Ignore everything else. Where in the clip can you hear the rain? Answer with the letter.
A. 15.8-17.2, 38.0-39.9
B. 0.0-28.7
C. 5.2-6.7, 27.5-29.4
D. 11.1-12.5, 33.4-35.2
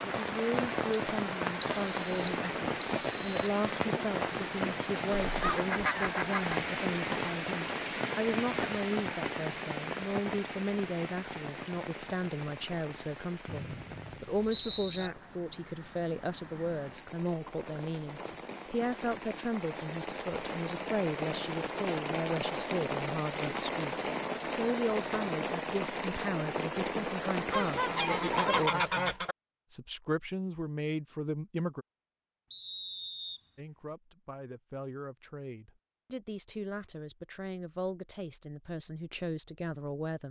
B.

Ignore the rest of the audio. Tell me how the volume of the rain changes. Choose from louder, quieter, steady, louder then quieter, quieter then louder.
quieter then louder.